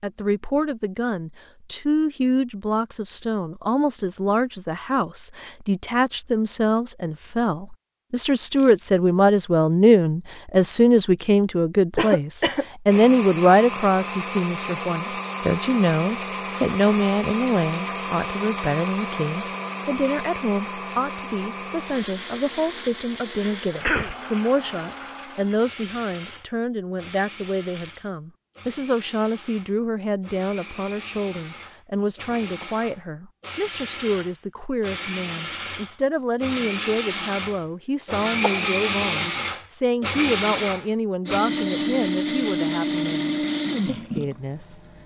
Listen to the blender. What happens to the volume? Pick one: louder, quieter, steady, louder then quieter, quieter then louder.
quieter then louder.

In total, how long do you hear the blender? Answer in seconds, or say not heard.
32 s.